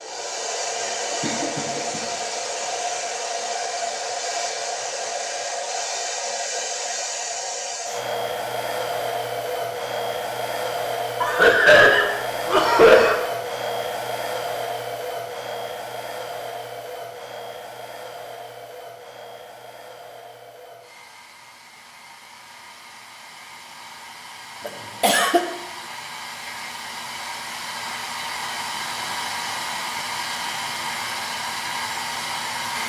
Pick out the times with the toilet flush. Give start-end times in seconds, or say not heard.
not heard.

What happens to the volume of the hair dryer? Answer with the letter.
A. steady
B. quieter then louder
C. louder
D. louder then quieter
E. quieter
B.